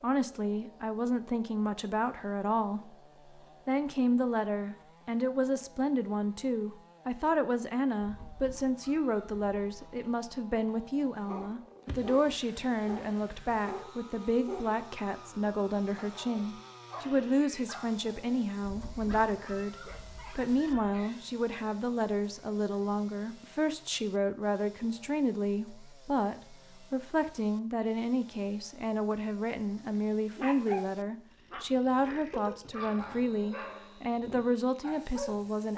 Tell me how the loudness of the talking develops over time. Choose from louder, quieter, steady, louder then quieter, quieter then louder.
steady.